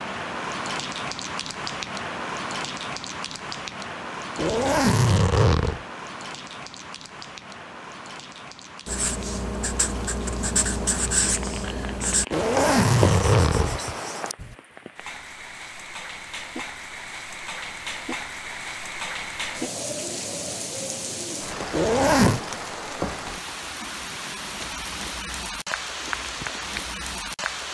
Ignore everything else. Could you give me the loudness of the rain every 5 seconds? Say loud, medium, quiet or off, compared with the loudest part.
loud, medium, medium, loud, loud, loud.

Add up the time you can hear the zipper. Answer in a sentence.
The zipper can be heard for 4 seconds in total.